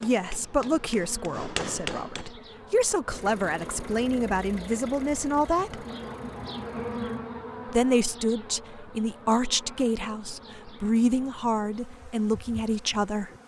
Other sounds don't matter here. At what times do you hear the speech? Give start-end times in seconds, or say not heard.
0.0-5.8, 7.7-13.3.